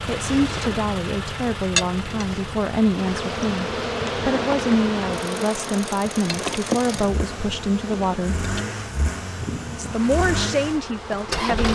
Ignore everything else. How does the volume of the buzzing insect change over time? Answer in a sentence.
The loudness of the buzzing insect goes down.